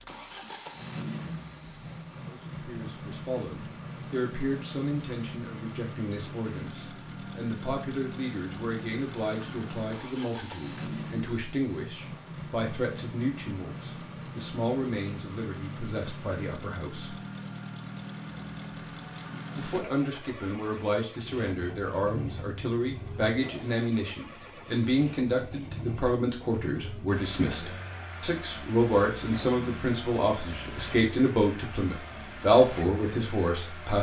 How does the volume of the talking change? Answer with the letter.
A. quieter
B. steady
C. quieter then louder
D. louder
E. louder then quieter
D.